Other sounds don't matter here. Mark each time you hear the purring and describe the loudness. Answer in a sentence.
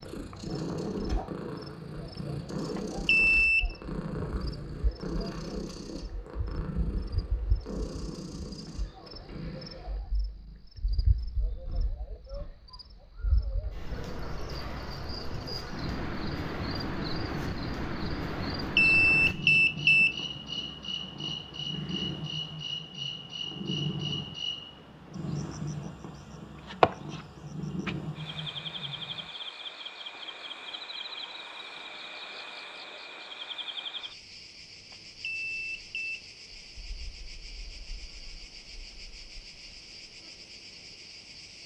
The purring can be heard from 0.0 to 29.3 s, getting quieter then louder.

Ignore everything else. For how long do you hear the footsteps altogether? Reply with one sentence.
The footsteps can't be heard in this clip.